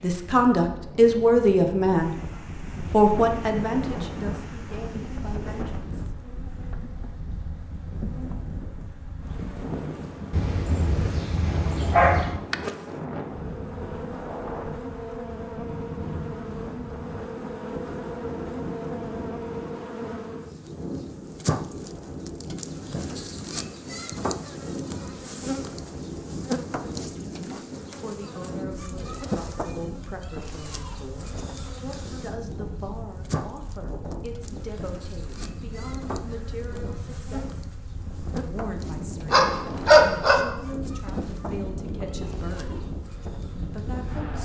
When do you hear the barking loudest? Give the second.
40 s.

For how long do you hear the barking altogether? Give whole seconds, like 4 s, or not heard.
3 s.